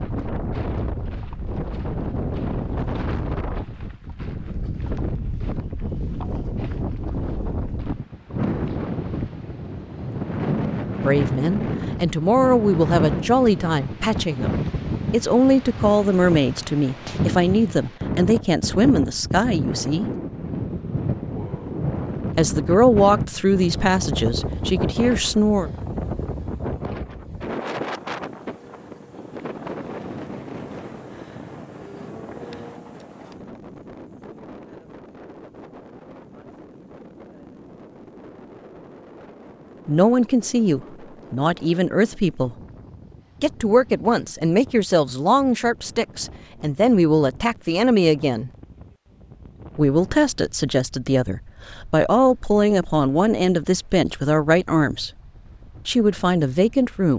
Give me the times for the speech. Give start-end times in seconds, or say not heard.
11.0-20.1, 22.4-25.7, 39.9-42.5, 43.4-48.5, 49.8-55.1, 55.9-57.1.